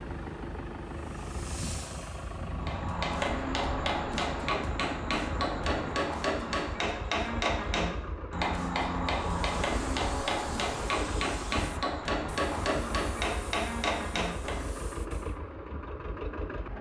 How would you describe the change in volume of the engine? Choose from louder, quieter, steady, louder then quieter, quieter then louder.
steady.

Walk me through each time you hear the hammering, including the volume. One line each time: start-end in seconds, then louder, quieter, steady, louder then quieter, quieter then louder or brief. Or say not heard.
2.5-14.8 steady.